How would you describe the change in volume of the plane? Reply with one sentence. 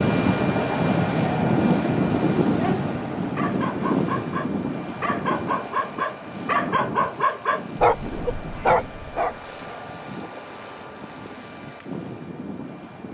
The loudness of the plane goes down.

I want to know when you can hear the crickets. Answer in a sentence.
You can't hear the crickets here.